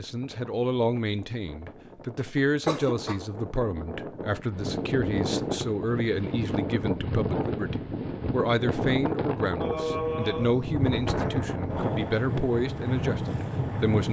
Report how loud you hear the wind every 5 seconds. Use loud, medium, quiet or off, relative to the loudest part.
medium, loud, loud.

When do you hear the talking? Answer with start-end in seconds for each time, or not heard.
0.0-14.0.